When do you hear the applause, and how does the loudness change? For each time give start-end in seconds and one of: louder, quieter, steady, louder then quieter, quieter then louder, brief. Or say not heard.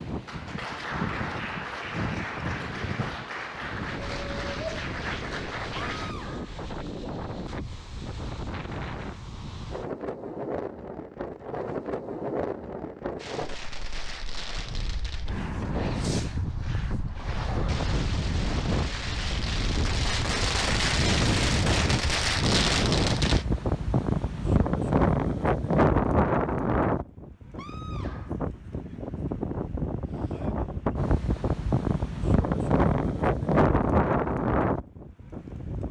0.1-6.2 steady.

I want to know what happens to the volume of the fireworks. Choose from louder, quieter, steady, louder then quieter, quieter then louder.
louder.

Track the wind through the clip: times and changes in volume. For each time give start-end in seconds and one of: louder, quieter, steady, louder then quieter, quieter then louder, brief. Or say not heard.
0.0-35.8 louder.